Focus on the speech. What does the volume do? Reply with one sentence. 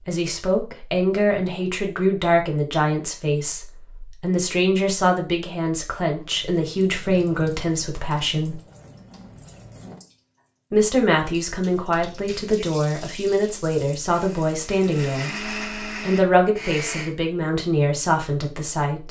The volume of the speech stays about the same.